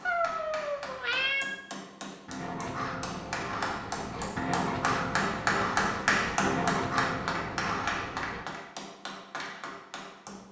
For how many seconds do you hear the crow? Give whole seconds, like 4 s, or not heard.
6 s.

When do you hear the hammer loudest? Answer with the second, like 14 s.
6 s.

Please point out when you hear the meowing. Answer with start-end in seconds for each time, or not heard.
0.1-1.6.